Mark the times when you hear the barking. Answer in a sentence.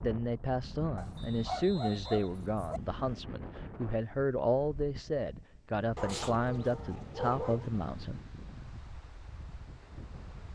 The barking can be heard from 0.9 to 2.8 s and from 6.0 to 7.7 s.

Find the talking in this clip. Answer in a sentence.
You can hear the talking from 0.0 to 8.2 s.